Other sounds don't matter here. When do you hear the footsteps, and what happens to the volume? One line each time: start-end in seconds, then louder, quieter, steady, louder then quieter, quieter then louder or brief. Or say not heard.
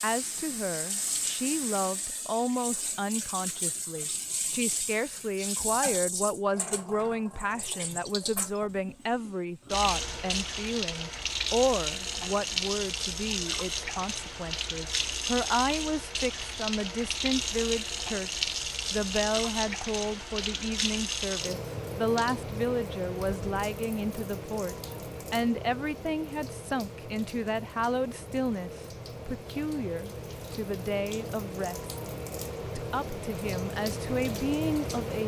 not heard.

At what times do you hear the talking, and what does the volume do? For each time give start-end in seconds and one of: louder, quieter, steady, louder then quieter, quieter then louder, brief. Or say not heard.
0.0-31.9 steady
32.6-35.2 brief.